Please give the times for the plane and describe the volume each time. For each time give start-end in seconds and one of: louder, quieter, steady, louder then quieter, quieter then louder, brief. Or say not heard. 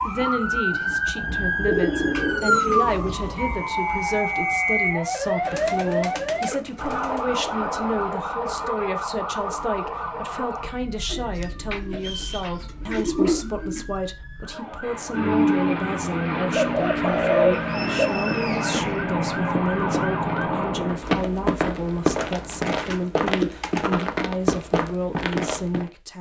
14.8-23.1 quieter.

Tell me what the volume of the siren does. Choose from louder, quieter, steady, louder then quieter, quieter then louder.
quieter then louder.